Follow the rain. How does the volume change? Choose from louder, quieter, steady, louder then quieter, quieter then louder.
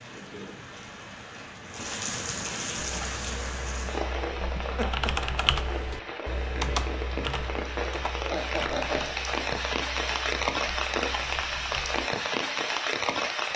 louder.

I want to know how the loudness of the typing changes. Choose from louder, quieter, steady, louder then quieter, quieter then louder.
louder then quieter.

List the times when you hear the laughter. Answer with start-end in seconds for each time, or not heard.
4.5-5.1, 8.2-9.2.